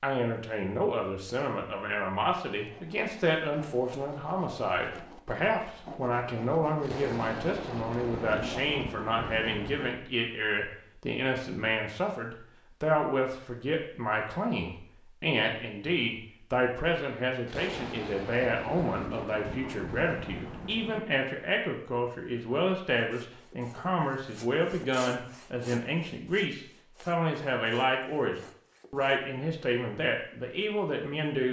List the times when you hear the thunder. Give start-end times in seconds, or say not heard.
6.8-9.9, 17.4-21.0.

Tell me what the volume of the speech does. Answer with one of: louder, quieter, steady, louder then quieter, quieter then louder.
steady.